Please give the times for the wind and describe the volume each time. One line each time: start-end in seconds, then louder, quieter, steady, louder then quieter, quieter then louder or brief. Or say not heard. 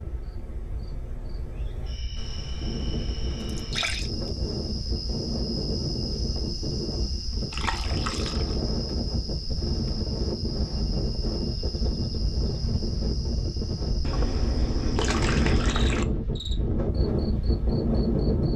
0.0-18.5 louder.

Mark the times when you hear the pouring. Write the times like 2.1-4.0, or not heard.
2.1-4.1, 7.5-8.6, 14.0-16.1.